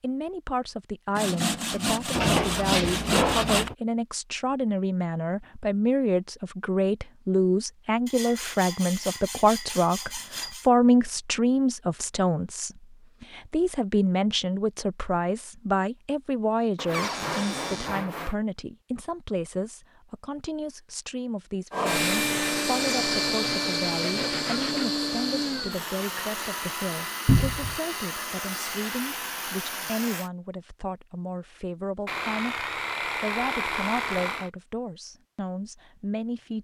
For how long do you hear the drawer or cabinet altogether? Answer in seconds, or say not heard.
3 s.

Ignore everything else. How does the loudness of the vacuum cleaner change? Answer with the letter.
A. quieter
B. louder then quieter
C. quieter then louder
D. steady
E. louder
A.